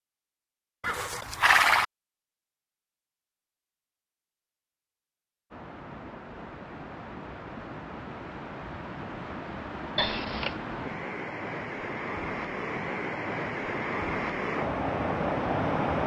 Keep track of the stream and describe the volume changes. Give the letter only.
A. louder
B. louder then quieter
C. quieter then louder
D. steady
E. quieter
A.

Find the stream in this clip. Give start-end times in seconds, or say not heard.
5.5-16.0.